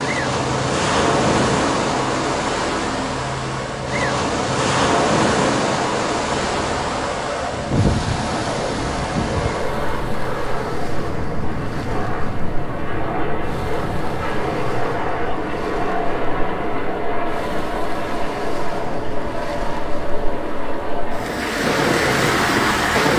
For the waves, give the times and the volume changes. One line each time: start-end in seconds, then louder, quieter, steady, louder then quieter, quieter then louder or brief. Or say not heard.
0.0-23.1 quieter then louder.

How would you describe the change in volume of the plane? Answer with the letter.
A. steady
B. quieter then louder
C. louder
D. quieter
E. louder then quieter
A.